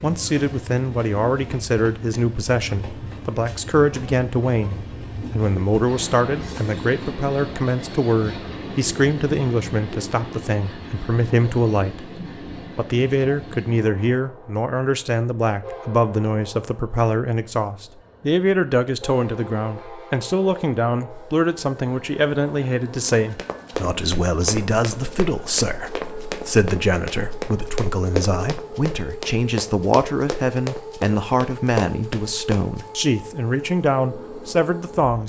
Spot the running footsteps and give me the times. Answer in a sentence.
You can hear the running footsteps from 23.1 to 32.9 s.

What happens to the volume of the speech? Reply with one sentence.
The volume of the speech stays about the same.